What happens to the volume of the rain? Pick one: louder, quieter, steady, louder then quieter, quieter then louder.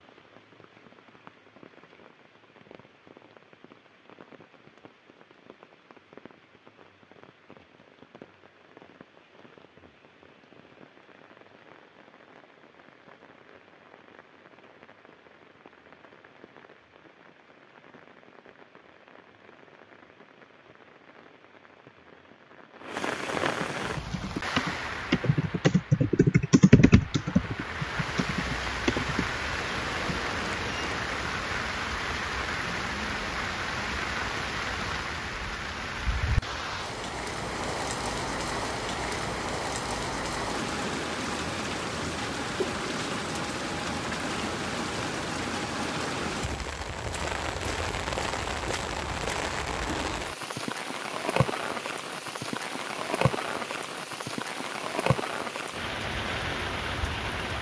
louder.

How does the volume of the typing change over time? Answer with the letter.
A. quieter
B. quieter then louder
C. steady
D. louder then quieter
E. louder
D.